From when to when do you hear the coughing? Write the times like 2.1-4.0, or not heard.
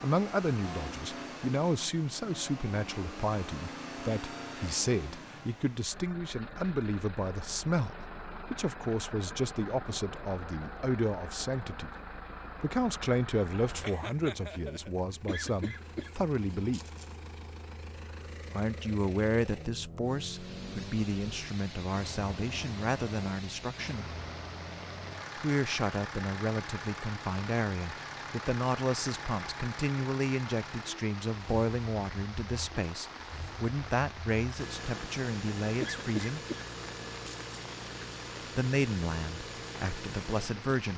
15.2-17.1, 35.8-37.5.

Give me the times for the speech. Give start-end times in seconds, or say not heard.
0.0-11.9, 12.6-16.8, 18.5-24.1, 25.4-36.4, 38.5-40.9.